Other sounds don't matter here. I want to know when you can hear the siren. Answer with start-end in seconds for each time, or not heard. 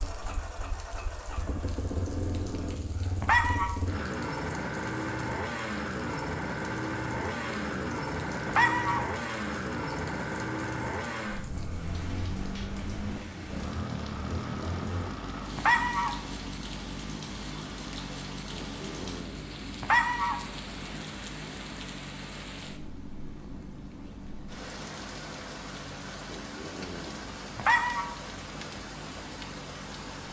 not heard.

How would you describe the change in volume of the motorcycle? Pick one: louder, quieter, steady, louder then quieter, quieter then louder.
quieter.